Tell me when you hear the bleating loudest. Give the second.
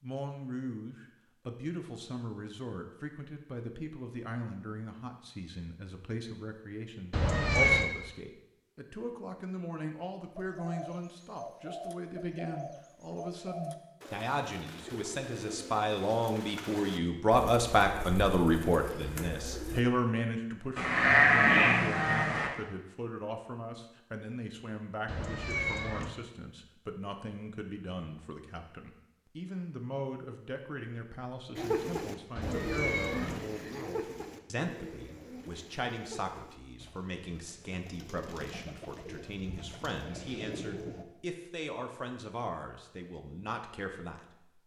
21 s.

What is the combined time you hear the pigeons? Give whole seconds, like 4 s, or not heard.
19 s.